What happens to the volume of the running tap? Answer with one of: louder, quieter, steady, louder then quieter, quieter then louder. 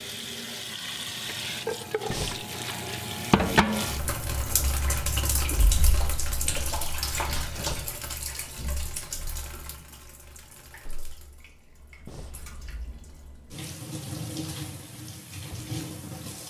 quieter then louder.